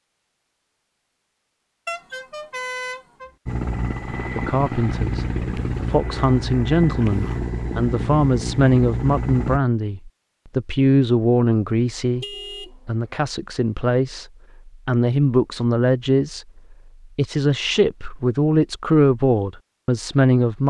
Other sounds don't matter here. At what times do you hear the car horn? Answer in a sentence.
The car horn can be heard from 1.9 to 3.4 s and from 12.2 to 12.9 s.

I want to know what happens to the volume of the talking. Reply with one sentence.
The loudness of the talking stays about the same.